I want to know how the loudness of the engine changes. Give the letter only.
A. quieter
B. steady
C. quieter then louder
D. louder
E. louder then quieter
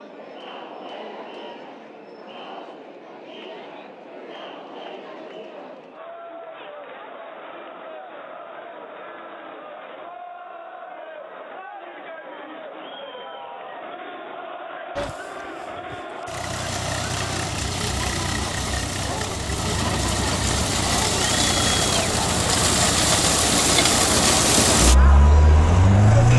D.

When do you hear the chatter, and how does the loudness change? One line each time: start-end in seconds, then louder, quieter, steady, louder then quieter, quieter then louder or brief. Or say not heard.
0.0-26.3 louder.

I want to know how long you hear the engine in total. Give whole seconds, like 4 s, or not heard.
11 s.